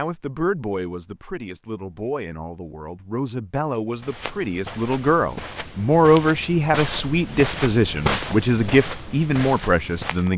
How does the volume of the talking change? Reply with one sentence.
The volume of the talking goes up.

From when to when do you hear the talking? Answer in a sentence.
You can hear the talking from 0.0 to 10.3 s.